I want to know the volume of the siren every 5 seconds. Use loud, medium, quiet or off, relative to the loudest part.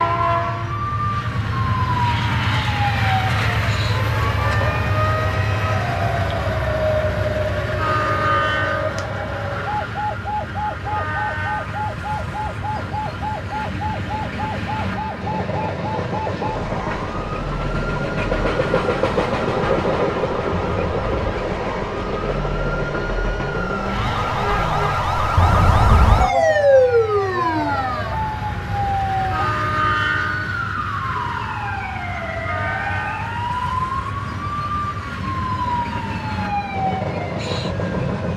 medium, medium, medium, medium, medium, loud, medium, medium.